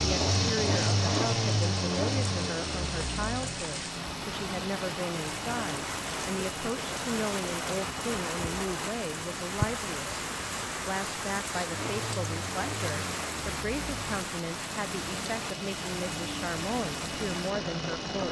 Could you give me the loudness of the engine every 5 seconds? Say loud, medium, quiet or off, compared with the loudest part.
loud, medium, medium, medium.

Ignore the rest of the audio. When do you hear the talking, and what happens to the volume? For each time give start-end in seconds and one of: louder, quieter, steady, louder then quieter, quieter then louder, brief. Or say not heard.
0.0-18.2 steady.